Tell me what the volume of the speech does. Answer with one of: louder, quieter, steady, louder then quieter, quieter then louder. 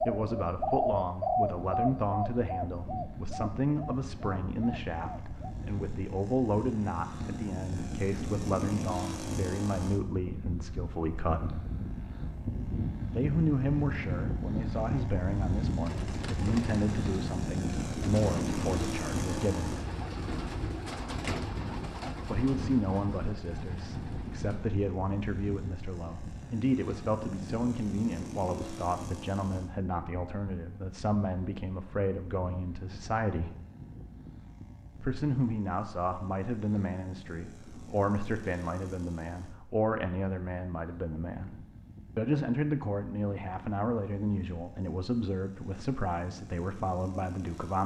steady.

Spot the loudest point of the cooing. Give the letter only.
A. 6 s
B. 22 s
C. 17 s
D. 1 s
D.